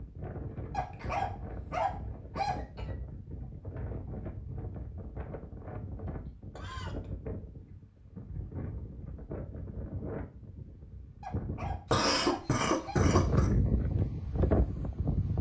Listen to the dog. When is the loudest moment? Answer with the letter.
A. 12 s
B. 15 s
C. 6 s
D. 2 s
D.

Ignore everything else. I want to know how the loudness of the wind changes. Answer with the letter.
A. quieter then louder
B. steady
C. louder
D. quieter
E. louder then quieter
C.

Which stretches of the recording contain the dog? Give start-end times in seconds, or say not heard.
0.7-2.5, 11.2-13.1.